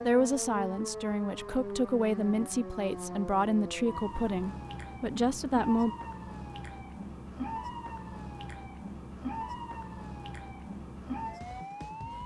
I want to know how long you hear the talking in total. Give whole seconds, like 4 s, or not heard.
6 s.